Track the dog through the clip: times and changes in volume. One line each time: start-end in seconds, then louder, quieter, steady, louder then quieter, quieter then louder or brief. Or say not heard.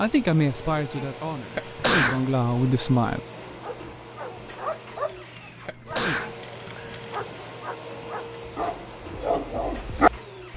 3.6-10.5 quieter then louder.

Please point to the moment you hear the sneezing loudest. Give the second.
2 s.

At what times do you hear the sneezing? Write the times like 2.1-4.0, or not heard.
1.2-2.2, 5.3-6.9.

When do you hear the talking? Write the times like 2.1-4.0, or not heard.
0.0-3.2.